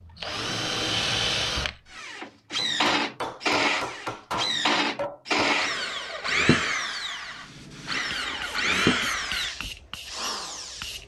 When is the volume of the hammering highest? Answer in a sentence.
The volume of the hammering peaks at 4 seconds.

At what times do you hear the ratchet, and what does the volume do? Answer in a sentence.
The ratchet can't be heard in this clip.